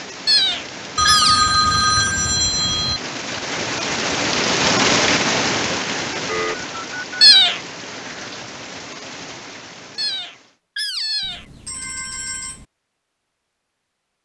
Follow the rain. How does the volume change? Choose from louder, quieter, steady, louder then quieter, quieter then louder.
louder then quieter.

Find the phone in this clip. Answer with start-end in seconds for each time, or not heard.
0.9-3.0, 6.2-7.3, 11.2-12.7.